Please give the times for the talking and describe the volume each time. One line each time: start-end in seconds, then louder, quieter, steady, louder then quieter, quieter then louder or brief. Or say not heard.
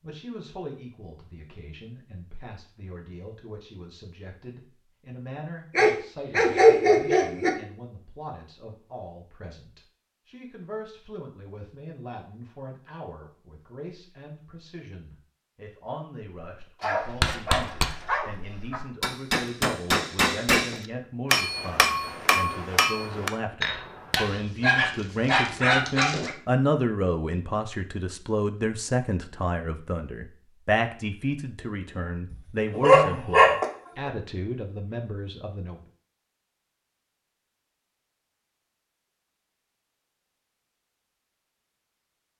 0.0-35.8 louder.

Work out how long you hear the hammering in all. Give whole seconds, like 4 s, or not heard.
8 s.